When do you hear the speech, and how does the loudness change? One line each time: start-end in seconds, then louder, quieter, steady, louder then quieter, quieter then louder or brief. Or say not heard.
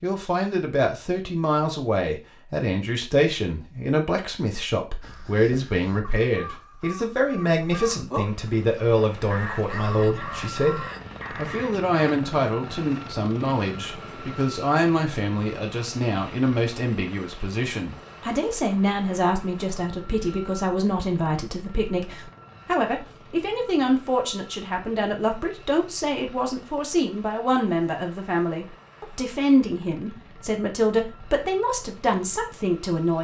0.0-33.1 steady.